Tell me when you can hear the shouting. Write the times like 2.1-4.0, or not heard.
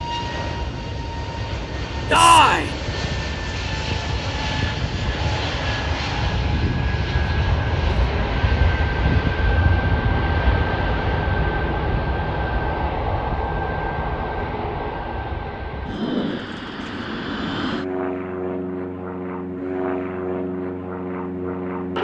2.1-2.7.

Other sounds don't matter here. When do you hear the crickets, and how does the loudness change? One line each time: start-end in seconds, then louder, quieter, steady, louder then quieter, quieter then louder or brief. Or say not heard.
not heard.